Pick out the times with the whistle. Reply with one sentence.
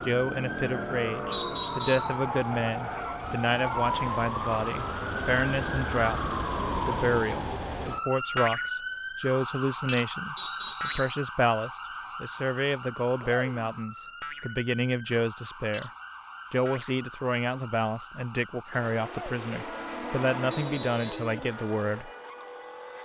The whistle can be heard from 1.3 to 2.1 s, from 10.3 to 11.2 s and from 20.5 to 21.4 s.